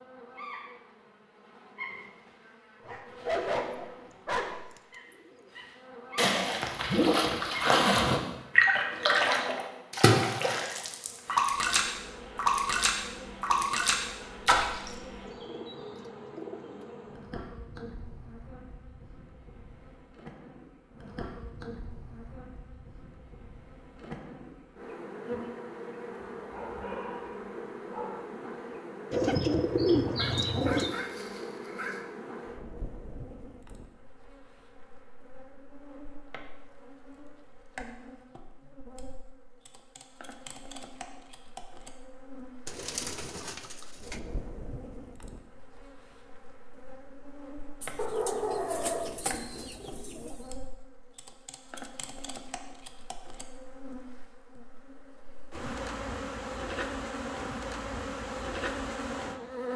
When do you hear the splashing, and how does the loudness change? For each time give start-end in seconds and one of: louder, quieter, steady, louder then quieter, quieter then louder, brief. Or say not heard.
6.2-15.0 steady.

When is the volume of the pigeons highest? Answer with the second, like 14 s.
30 s.